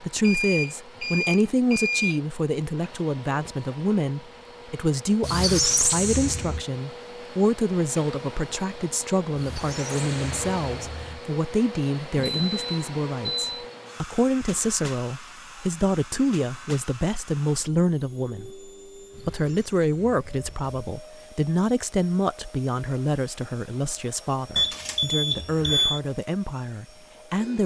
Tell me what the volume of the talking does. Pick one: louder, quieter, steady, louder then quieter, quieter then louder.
steady.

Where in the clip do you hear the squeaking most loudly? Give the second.
6 s.